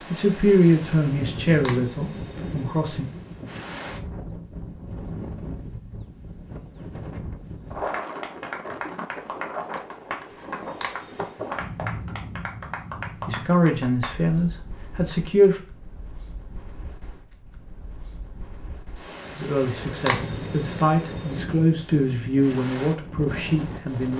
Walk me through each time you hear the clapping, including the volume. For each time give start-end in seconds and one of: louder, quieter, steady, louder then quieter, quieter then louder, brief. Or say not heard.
7.8-14.2 steady.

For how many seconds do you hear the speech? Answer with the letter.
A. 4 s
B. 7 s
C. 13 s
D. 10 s
D.